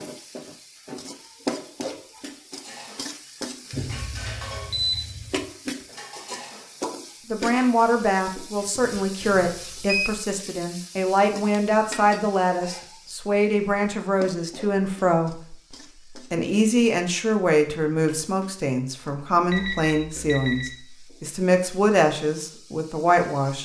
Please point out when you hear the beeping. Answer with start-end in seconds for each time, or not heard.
3.7-5.5, 9.2-10.2, 19.5-20.7.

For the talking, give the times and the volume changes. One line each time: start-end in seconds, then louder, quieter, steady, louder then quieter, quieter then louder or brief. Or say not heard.
7.2-23.5 steady.